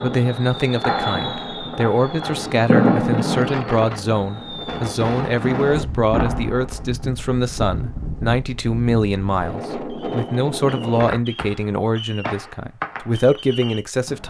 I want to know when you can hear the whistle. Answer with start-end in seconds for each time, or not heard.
not heard.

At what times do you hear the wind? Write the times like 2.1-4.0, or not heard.
0.0-11.2.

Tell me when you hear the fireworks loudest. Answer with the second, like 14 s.
3 s.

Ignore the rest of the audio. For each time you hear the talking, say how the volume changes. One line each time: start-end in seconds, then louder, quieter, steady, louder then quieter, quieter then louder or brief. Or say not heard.
0.0-14.2 steady.